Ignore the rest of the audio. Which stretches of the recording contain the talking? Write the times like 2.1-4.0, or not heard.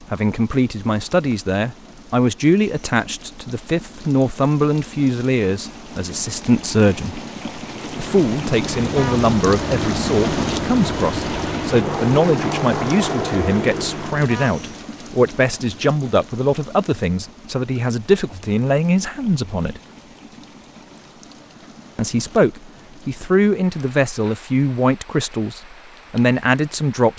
0.1-7.2, 8.0-19.8, 21.9-27.1.